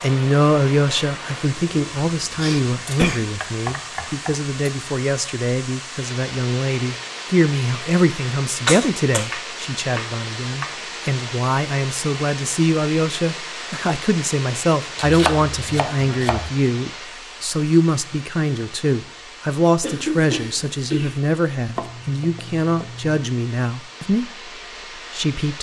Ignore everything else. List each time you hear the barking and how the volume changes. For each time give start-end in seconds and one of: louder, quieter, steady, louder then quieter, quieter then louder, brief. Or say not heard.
not heard.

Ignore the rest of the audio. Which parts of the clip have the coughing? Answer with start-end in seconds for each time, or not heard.
1.7-3.2, 8.7-9.2, 19.8-21.2.